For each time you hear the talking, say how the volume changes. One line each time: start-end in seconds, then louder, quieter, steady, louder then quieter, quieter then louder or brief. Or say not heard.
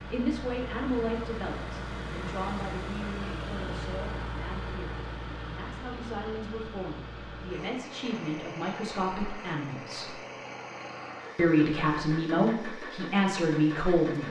0.1-10.2 quieter then louder
11.3-14.2 brief.